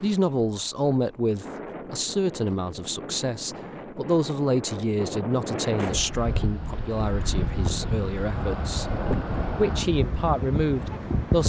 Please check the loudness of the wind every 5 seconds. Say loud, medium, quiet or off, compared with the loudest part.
medium, loud, loud.